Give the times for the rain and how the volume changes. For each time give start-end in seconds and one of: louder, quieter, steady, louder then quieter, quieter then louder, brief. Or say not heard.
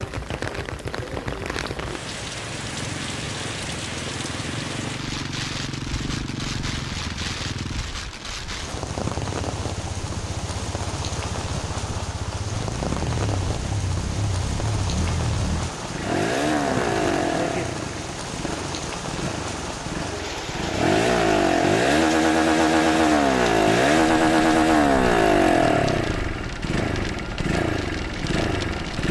0.0-29.0 steady.